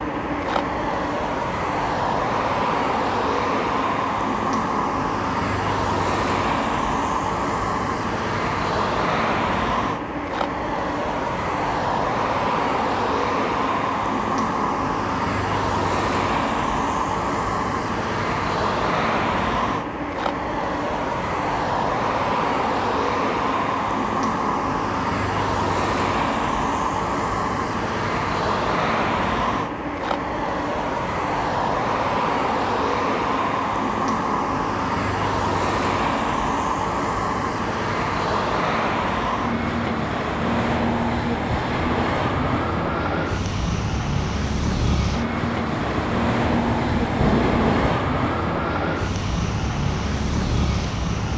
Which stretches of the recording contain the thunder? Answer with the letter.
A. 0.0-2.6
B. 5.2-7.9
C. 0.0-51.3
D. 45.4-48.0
D.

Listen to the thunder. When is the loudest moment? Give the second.
47 s.